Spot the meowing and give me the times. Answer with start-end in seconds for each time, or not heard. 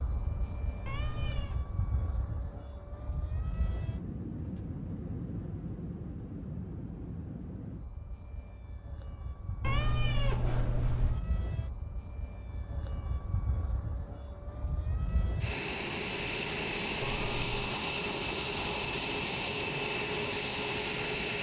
0.8-1.6, 9.6-11.2, 17.0-17.8.